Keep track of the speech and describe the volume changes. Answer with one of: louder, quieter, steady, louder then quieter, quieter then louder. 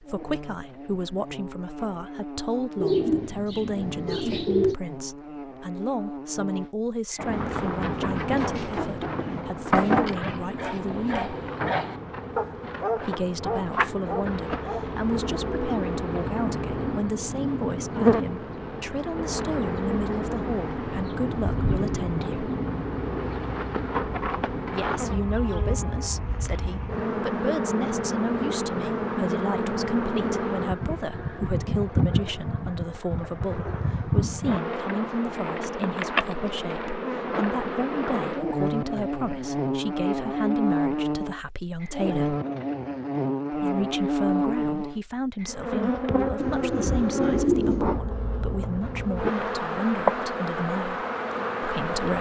steady.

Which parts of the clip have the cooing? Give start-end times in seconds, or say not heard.
2.8-4.8, 46.4-47.9.